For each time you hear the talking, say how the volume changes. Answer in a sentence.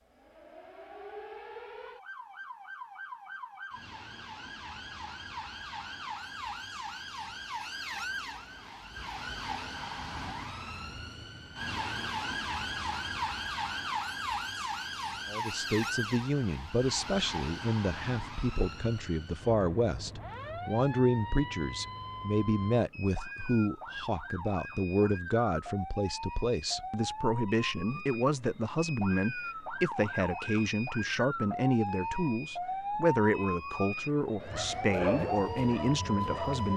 The talking can be heard from 15.3 to 36.7 s, at a steady volume.